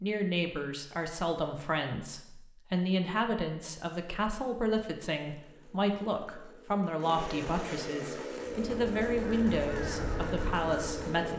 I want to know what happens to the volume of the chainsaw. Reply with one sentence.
The volume of the chainsaw goes up.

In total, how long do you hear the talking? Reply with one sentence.
You can hear the talking for 11 seconds altogether.